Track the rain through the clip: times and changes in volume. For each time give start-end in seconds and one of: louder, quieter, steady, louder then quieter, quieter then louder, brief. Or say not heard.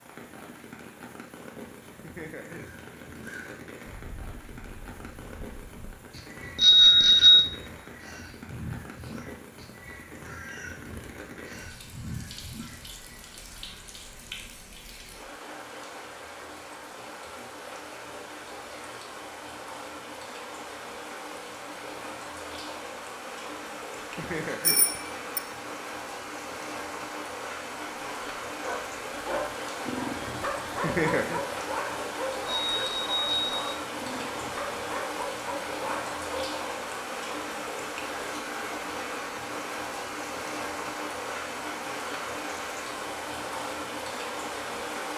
0.0-45.1 louder.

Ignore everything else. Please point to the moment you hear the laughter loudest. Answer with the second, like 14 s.
31 s.